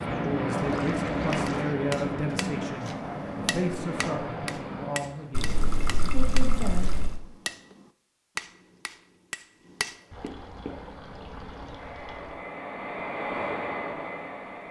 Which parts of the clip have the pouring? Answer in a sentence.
The pouring can be heard from 0.7 to 1.6 s, from 5.3 to 7.2 s and from 10.1 to 12.3 s.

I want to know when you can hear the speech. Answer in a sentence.
You can hear the speech from 0.0 to 6.9 s.